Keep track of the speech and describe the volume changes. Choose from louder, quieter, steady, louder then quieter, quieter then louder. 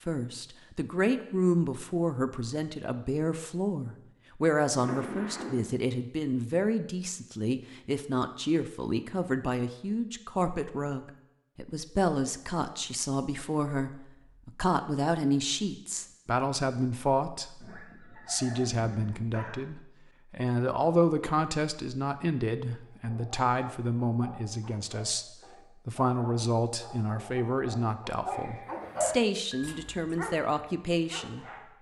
steady.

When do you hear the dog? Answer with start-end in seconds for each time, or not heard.
22.9-31.7.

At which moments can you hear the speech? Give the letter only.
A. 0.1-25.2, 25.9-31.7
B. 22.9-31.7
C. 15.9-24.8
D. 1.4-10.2
A.